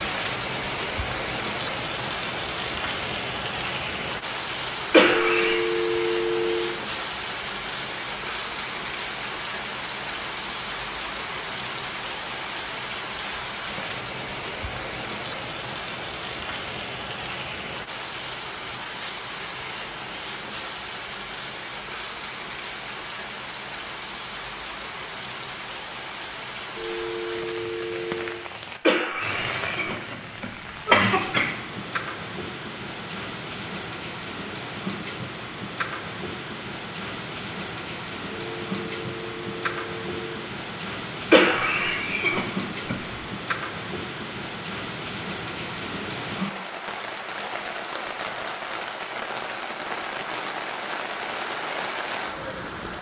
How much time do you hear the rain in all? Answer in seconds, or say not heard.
53 s.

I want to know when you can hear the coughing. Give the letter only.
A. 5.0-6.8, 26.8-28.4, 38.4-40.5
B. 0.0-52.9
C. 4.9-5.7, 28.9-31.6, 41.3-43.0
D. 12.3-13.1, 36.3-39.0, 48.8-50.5
C.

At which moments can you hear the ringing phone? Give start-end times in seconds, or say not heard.
5.0-6.8, 26.8-28.4, 38.4-40.5.